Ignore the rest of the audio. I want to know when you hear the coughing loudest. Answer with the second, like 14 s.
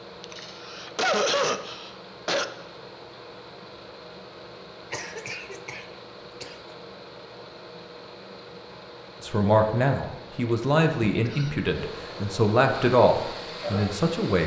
1 s.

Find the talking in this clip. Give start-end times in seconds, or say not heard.
9.2-14.4.